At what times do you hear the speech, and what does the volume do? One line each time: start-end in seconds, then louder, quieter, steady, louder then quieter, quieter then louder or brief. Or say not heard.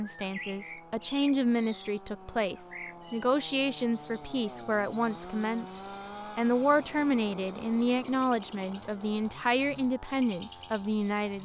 0.0-11.3 steady.